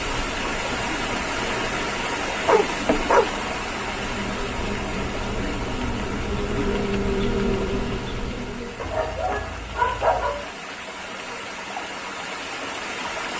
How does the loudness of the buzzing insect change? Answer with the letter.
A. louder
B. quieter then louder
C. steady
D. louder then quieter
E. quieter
A.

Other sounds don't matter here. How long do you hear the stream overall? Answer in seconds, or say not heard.
13 s.